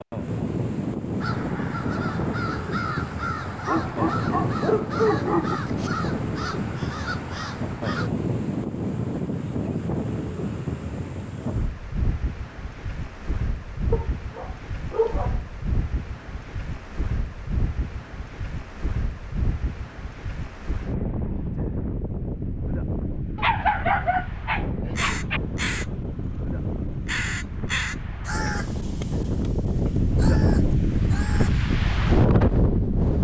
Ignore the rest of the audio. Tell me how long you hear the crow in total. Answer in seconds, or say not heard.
14 s.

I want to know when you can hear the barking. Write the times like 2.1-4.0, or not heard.
3.6-5.6, 13.9-15.4, 23.4-25.4.